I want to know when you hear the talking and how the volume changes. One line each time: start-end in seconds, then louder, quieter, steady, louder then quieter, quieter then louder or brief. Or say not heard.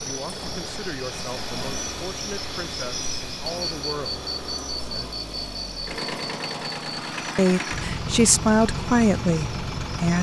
0.0-5.2 steady
7.3-10.1 brief.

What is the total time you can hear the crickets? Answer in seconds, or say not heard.
10 s.